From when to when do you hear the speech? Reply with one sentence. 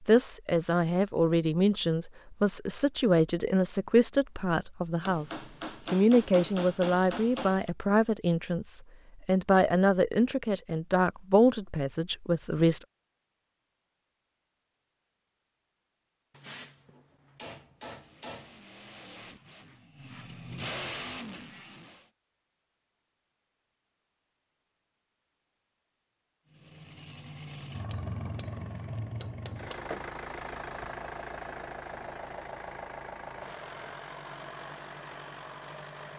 The speech can be heard from 0.1 to 12.8 s.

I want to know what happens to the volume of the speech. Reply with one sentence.
The loudness of the speech stays about the same.